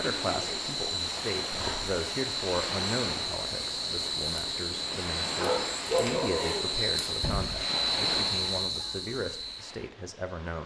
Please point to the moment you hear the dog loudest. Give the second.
6 s.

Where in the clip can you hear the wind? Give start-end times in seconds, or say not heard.
0.0-10.6.